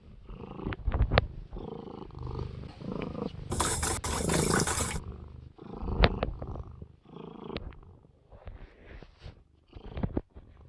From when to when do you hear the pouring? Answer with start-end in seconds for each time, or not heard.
3.5-5.0.